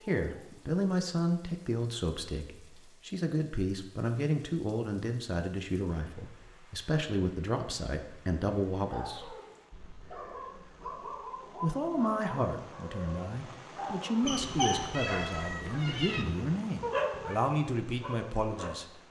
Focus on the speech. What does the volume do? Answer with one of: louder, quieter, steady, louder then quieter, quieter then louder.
steady.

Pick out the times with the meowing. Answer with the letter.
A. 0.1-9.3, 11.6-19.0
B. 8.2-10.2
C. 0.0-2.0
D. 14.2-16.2
D.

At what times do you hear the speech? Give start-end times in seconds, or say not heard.
0.1-9.3, 11.6-19.0.